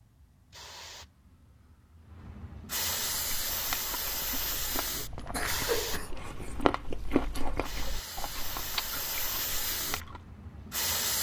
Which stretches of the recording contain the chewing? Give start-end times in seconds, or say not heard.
3.1-10.2.